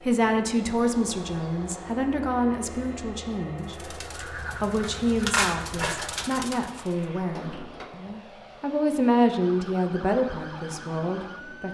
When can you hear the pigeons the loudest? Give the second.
5 s.